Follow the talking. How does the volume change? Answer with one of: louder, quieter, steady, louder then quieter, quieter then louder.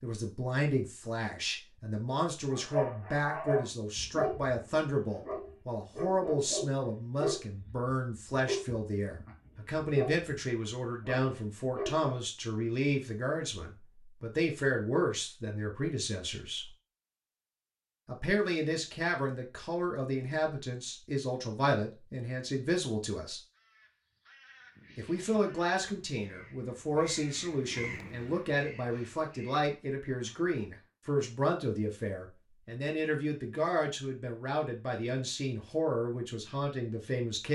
steady.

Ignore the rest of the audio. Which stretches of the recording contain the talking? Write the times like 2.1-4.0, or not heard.
0.0-16.7, 18.1-23.4, 24.9-37.4.